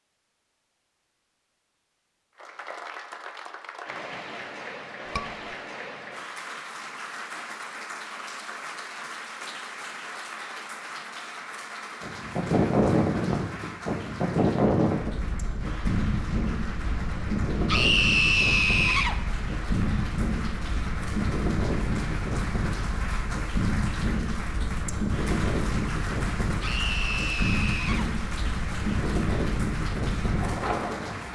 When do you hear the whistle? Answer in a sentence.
You can't hear the whistle here.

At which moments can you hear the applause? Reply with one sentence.
The applause can be heard from 2.4 to 31.3 s.